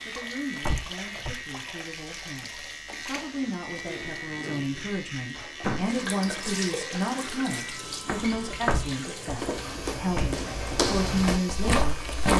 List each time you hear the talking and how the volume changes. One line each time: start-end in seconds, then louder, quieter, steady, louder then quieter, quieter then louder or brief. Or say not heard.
0.1-12.3 louder.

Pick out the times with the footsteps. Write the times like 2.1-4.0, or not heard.
7.9-12.3.